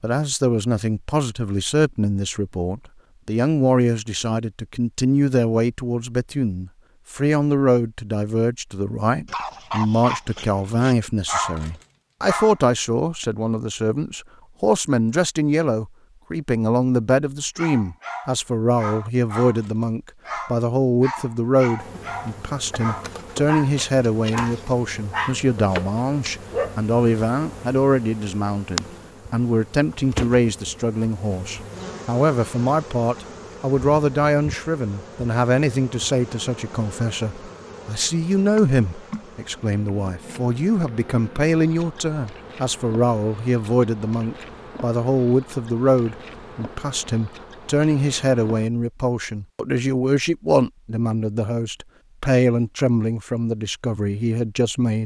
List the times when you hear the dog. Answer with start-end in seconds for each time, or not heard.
9.2-12.6, 17.6-26.9.